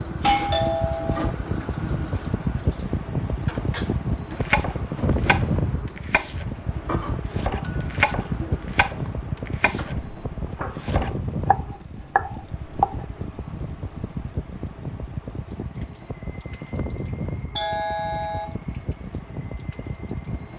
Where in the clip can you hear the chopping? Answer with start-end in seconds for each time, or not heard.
4.3-13.1.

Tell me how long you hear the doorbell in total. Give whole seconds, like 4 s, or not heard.
3 s.